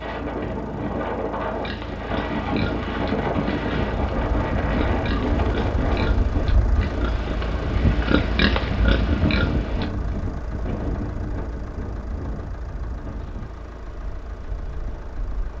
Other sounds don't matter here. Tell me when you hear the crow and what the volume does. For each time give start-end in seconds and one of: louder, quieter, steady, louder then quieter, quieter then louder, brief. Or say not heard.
not heard.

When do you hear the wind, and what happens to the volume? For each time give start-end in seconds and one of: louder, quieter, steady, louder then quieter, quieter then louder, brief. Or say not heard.
0.0-15.5 quieter.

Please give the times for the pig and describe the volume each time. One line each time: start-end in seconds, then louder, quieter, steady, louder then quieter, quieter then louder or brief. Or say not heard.
1.5-9.9 louder.